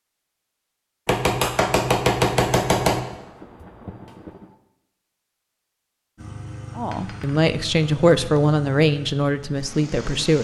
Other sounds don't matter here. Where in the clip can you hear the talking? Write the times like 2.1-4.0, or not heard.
6.8-10.3.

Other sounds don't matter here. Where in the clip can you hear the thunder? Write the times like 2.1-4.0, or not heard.
3.0-4.5.